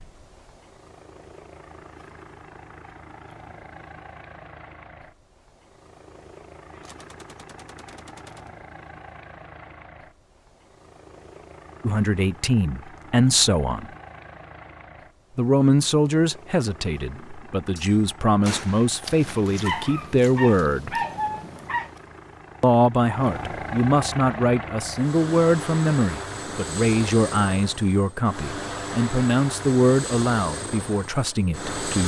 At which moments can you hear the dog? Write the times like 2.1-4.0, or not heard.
19.1-21.9.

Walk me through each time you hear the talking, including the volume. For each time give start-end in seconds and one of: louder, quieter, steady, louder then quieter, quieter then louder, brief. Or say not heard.
11.8-13.8 brief
15.3-21.0 quieter then louder
22.6-32.0 steady.